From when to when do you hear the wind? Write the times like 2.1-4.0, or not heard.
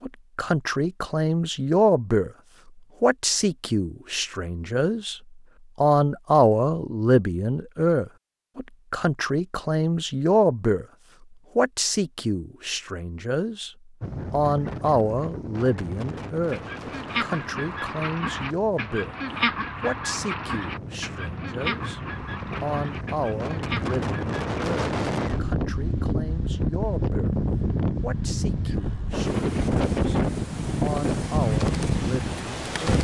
14.0-32.9.